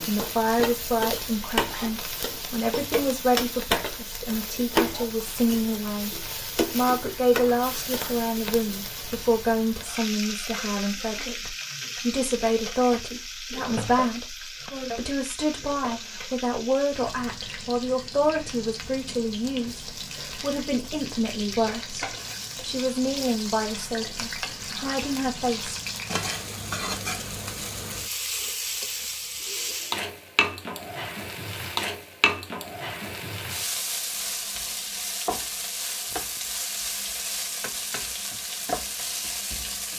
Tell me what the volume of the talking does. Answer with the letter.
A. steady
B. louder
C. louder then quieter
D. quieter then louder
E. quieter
A.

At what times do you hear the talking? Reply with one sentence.
The talking can be heard from 0.1 to 25.8 s.